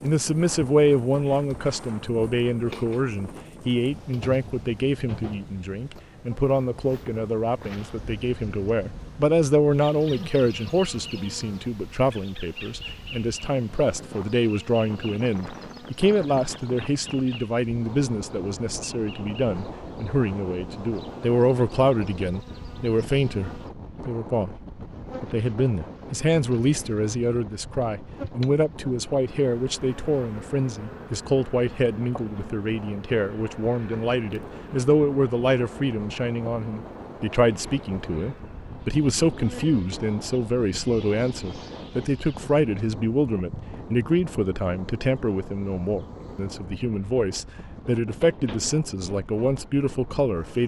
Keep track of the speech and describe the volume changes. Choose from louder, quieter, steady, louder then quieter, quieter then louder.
steady.